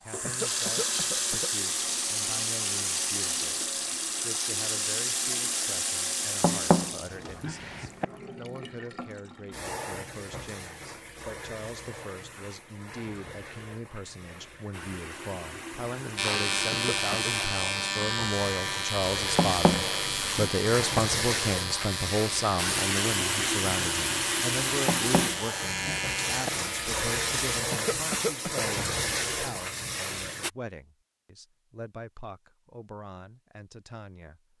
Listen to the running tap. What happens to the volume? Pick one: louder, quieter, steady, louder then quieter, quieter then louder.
quieter then louder.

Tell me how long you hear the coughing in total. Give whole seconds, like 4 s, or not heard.
3 s.